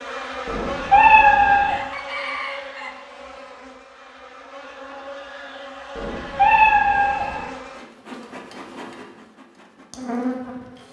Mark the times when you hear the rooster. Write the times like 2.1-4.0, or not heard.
1.6-3.0.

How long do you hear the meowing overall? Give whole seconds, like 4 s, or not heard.
3 s.